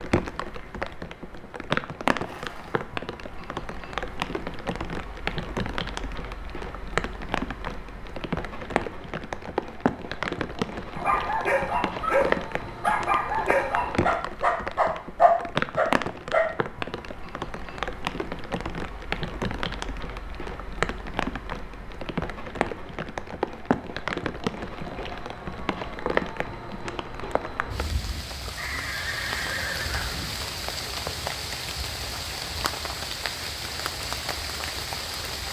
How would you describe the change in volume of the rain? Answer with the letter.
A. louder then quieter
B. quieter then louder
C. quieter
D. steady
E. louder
D.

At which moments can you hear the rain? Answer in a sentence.
You can hear the rain from 0.0 to 35.4 s.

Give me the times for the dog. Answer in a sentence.
You can hear the dog from 10.9 to 16.4 s.